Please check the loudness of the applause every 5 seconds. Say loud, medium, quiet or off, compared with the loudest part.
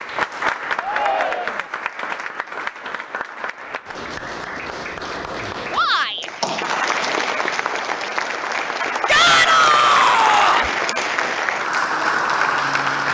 medium, loud, loud.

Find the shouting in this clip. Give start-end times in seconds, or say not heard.
0.8-1.7, 5.7-6.3, 9.1-10.7.